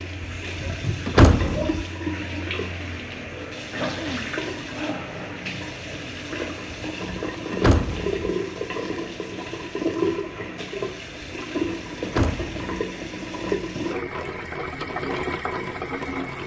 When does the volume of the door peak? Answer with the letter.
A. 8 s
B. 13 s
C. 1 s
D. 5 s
C.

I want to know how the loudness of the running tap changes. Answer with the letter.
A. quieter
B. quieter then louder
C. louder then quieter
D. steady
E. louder
D.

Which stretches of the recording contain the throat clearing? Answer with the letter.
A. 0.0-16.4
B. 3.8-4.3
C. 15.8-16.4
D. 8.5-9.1
B.